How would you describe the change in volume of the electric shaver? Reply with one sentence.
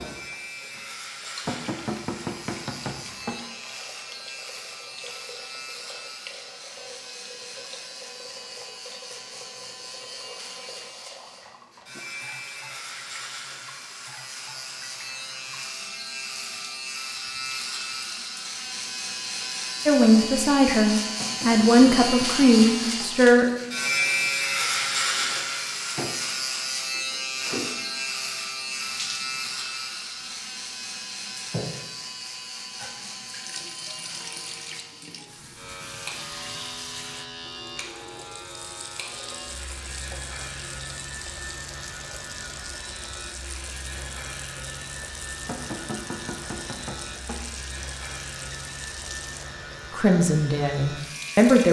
The volume of the electric shaver goes up, then down.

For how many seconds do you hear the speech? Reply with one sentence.
You can hear the speech for 5 seconds altogether.